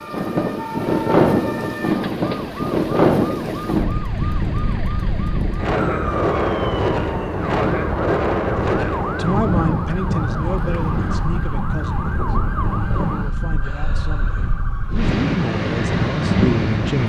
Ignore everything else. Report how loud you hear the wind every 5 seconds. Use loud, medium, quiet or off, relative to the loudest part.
loud, loud, medium, loud.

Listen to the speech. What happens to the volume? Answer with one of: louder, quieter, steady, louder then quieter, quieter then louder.
quieter then louder.